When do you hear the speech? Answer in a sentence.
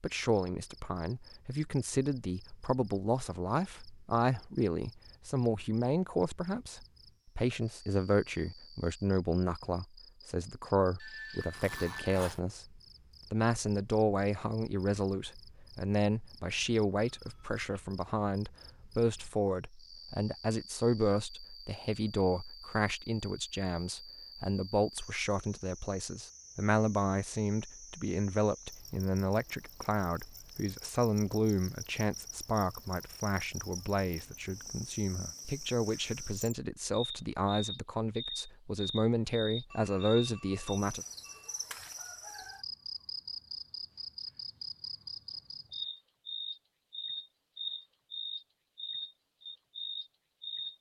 You can hear the speech from 0.0 to 12.7 s and from 13.3 to 41.0 s.